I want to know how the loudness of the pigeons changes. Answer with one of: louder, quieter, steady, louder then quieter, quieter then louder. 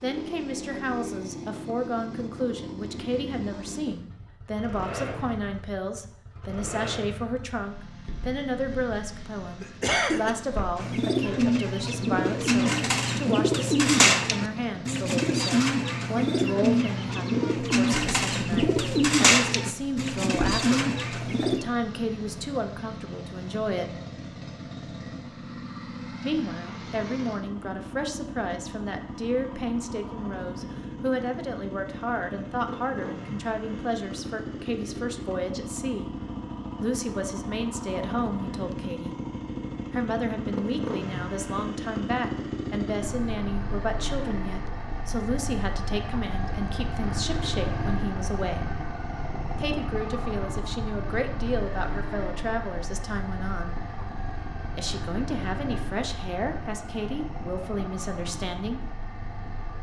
steady.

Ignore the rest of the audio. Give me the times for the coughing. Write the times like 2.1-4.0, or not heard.
9.6-10.3.